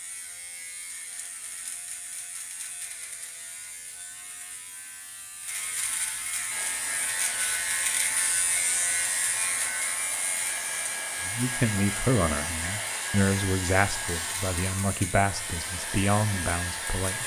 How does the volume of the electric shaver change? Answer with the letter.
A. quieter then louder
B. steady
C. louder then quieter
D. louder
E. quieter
C.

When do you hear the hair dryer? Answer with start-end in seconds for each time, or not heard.
6.5-17.2.